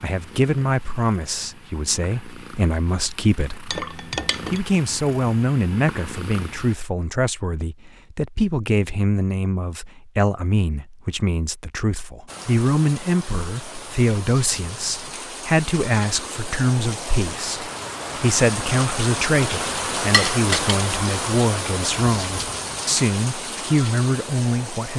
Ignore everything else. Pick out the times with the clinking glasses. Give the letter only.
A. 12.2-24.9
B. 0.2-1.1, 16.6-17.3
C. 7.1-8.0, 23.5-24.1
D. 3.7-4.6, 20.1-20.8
D.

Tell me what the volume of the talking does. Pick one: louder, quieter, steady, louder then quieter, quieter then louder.
steady.